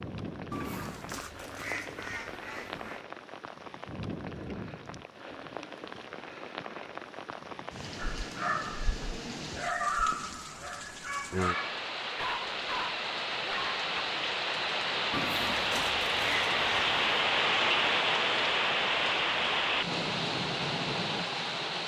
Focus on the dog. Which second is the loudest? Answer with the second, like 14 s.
10 s.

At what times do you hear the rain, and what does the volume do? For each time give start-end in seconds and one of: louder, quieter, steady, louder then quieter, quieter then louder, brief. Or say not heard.
0.0-21.8 louder.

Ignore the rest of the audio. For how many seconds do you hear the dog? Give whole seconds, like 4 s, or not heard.
6 s.